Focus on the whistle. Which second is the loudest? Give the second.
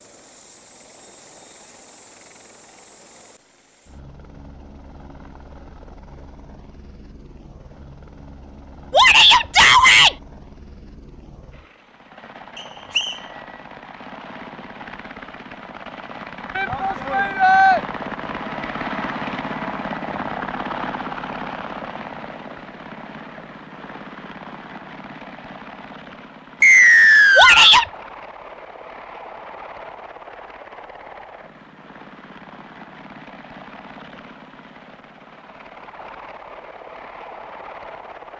27 s.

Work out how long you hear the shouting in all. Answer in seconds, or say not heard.
3 s.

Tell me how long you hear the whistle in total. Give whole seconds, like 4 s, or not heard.
2 s.